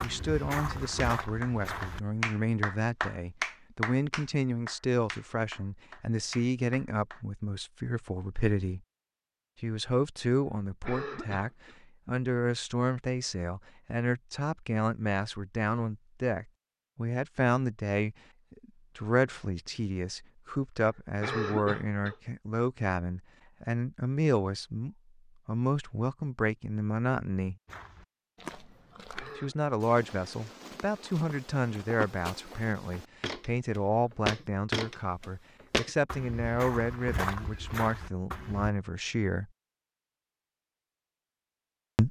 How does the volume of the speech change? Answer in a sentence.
The loudness of the speech stays about the same.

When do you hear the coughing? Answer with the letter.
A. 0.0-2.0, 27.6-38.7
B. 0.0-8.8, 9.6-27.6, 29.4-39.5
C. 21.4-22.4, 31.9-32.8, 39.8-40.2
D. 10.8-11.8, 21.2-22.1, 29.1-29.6
D.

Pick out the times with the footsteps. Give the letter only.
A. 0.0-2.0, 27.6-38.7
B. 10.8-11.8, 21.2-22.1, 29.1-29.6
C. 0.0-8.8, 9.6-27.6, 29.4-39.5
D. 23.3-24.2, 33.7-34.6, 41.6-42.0
A.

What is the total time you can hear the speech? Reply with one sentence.
You can hear the speech for 37 seconds altogether.